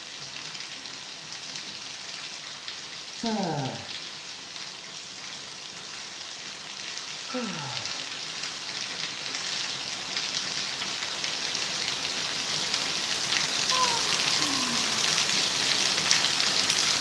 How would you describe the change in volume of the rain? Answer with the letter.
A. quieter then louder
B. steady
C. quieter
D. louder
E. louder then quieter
D.